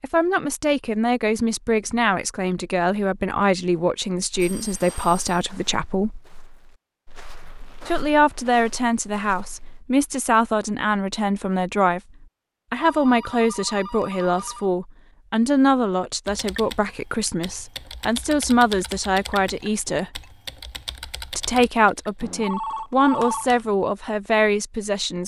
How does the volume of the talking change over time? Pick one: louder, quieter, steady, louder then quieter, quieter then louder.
steady.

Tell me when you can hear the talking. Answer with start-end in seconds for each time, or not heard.
0.0-6.2, 7.8-12.0, 12.7-20.2, 21.4-25.2.